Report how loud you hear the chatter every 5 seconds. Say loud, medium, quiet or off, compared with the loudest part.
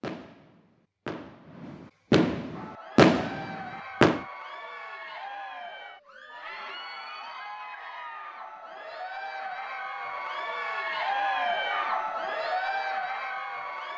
medium, medium, loud.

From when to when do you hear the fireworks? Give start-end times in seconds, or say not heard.
0.0-4.2.